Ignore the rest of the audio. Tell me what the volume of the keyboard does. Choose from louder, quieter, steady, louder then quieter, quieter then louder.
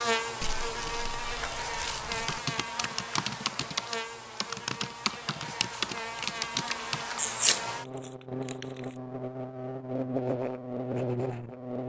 steady.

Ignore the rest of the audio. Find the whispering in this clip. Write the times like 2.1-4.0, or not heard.
not heard.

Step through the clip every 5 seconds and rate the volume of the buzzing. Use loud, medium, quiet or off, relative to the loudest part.
loud, medium, loud.